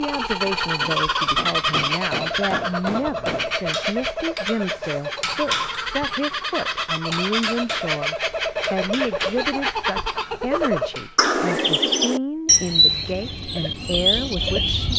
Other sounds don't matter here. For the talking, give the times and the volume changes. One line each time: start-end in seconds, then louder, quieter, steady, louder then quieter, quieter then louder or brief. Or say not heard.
0.0-14.9 steady.